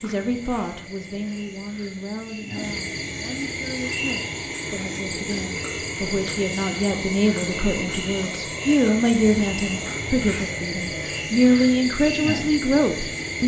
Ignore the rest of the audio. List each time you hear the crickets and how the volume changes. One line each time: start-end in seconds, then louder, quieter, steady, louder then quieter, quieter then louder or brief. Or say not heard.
0.0-13.4 louder.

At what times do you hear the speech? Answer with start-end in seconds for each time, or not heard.
0.0-13.4.